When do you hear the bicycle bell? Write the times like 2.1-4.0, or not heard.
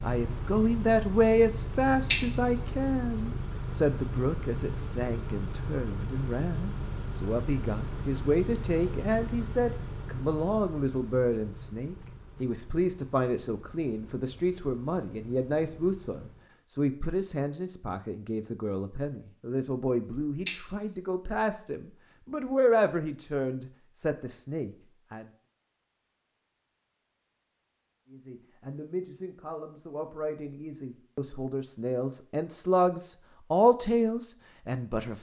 2.1-2.7, 20.4-21.0.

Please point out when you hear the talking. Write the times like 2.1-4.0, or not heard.
0.0-25.3, 28.1-35.1.